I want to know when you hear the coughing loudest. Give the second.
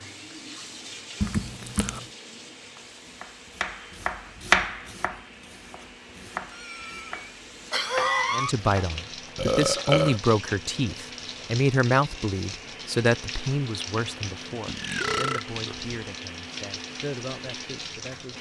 8 s.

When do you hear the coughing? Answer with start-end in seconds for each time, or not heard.
6.5-8.6.